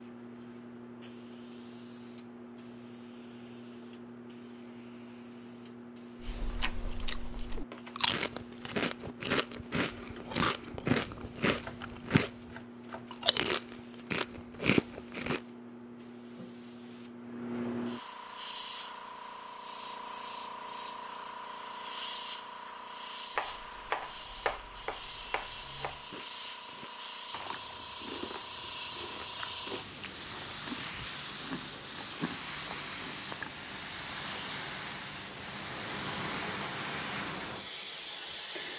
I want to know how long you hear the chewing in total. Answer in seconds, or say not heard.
16 s.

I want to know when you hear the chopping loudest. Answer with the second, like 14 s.
24 s.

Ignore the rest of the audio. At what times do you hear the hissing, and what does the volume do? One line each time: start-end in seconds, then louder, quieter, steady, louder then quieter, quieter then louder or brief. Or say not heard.
0.0-38.7 louder.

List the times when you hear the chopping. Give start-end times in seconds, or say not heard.
11.6-13.4, 23.4-26.1.